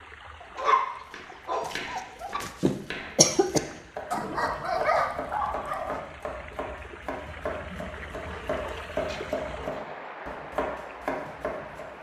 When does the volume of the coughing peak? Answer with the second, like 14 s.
3 s.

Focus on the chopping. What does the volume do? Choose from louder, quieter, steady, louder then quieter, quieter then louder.
louder.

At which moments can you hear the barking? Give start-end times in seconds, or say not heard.
0.4-2.4, 4.1-6.0, 8.2-10.0.